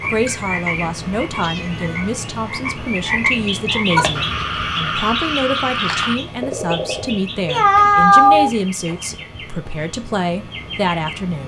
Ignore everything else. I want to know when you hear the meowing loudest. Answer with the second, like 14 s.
8 s.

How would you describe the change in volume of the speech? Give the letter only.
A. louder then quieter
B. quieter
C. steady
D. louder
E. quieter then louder
C.